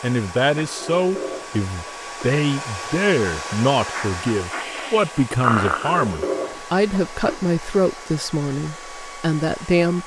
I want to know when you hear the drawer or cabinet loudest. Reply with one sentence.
The loudest moment of the drawer or cabinet is at 6 seconds.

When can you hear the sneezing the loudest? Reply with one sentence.
The loudest moment of the sneezing is at 6 seconds.